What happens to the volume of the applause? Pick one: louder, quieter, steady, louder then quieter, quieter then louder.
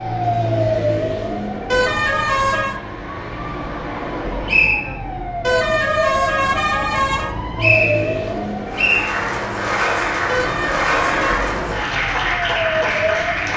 steady.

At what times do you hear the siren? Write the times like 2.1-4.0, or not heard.
0.0-13.5.